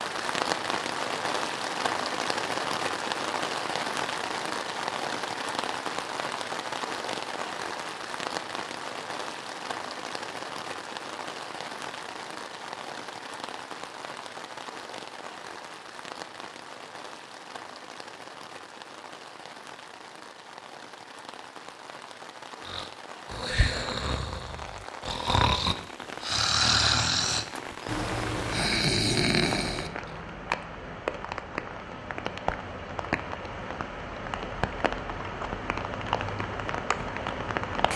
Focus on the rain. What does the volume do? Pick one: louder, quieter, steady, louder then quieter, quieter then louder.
quieter then louder.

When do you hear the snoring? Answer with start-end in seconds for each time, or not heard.
22.6-30.2.